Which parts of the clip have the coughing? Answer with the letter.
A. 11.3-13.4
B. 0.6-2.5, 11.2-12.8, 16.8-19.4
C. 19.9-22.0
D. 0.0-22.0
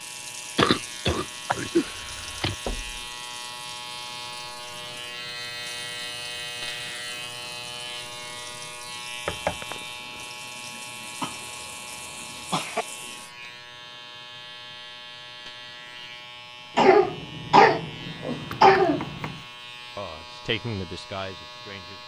B.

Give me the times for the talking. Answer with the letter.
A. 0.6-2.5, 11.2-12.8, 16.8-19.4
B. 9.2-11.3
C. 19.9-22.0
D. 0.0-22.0
C.